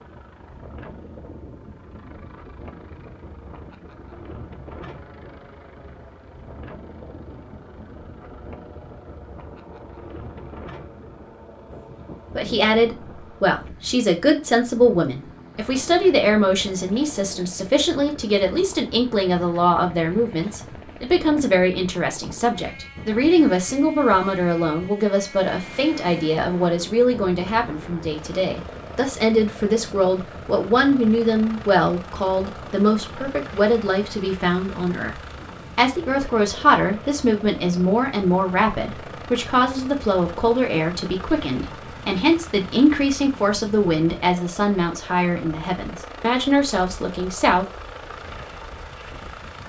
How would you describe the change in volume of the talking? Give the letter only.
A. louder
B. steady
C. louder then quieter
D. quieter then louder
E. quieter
B.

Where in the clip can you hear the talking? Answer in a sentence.
The talking can be heard from 12.3 to 47.6 s.